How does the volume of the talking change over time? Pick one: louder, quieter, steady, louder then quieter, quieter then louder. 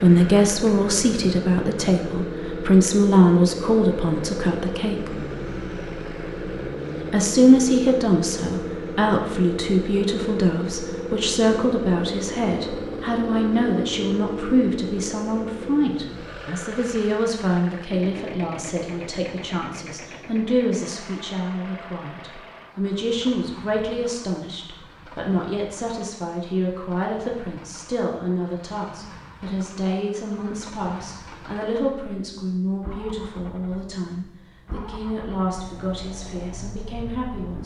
quieter.